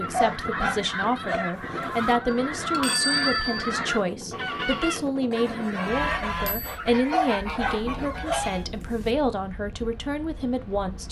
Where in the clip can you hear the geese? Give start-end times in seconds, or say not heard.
0.0-8.7.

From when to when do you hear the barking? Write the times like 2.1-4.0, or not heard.
0.1-2.1, 7.1-9.1.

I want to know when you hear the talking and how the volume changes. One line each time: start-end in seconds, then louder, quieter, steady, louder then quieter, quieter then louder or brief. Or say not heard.
0.0-11.0 steady.